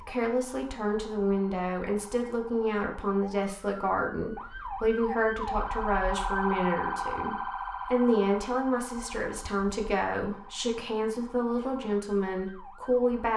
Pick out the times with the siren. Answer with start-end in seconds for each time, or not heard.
0.0-13.3.